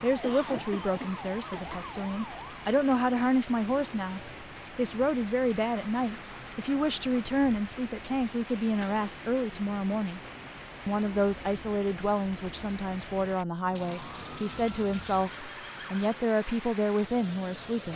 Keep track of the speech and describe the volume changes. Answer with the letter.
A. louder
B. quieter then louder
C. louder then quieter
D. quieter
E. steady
E.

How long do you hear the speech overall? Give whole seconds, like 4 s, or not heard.
17 s.